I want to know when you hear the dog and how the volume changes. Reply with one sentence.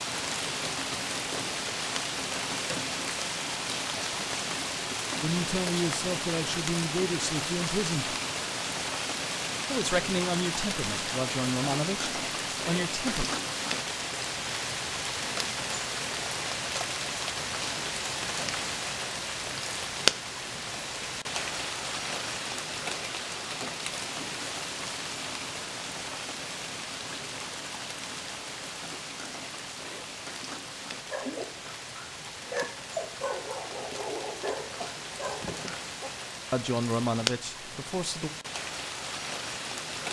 The dog can be heard from 31.1 to 36.1 s, getting louder then quieter.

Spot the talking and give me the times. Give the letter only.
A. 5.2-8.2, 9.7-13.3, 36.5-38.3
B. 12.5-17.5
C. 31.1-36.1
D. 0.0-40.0
A.